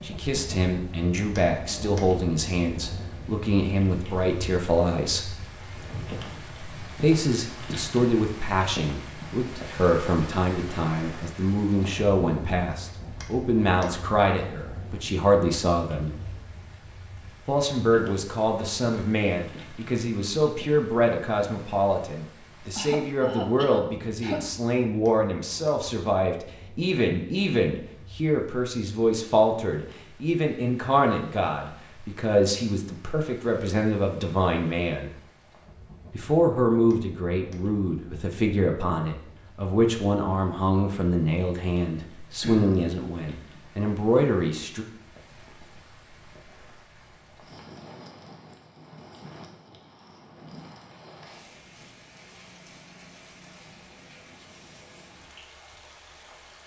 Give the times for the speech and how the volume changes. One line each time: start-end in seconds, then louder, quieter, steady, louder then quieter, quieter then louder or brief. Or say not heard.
0.0-5.3 steady
7.0-16.1 steady
17.4-35.1 steady
36.1-44.9 steady.